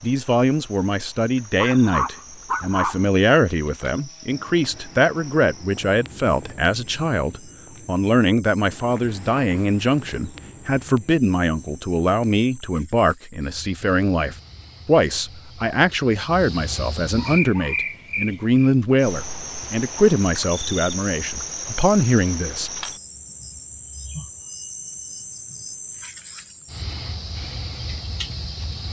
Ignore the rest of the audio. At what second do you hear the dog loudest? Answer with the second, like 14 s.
3 s.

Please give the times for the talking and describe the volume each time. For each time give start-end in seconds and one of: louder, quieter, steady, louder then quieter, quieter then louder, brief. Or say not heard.
0.0-22.7 steady.